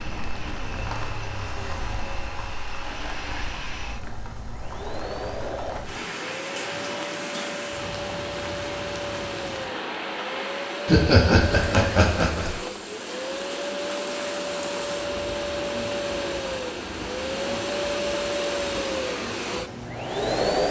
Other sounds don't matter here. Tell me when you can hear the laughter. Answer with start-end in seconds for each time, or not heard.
10.8-12.6.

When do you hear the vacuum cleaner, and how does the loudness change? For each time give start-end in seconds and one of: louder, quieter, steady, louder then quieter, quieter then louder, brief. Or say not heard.
0.0-20.6 louder.